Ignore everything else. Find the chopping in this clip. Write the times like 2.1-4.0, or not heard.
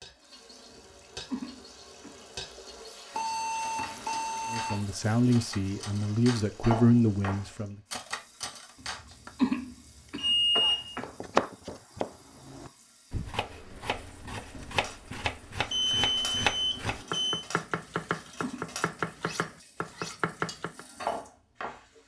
11.0-20.9.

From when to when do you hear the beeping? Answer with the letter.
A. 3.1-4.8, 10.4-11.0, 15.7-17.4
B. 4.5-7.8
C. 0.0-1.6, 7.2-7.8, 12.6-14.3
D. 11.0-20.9
A.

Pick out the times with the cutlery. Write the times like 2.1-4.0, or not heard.
0.0-9.0, 14.7-21.8.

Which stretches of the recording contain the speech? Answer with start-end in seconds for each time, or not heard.
4.5-7.8.